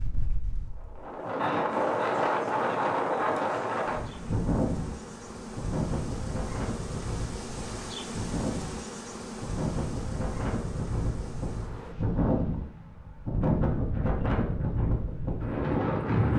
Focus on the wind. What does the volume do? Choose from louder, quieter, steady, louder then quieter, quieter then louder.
quieter then louder.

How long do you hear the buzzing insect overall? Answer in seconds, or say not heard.
10 s.